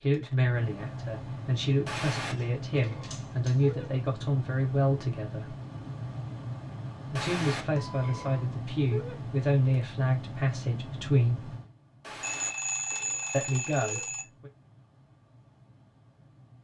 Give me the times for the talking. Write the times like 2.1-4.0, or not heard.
0.0-5.5, 7.1-11.6, 13.3-14.5.